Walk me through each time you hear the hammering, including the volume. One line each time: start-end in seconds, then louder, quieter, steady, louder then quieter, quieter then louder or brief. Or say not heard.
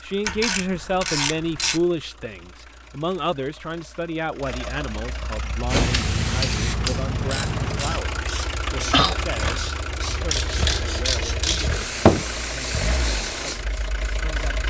not heard.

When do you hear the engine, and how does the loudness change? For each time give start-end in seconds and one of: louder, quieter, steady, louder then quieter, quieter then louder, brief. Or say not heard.
0.0-14.6 louder.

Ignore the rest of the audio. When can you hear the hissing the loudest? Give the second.
9 s.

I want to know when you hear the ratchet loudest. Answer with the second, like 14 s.
12 s.